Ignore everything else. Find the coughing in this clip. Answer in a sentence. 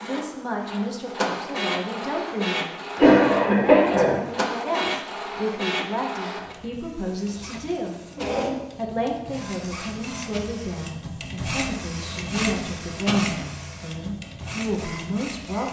The coughing can be heard from 3.0 to 4.2 s.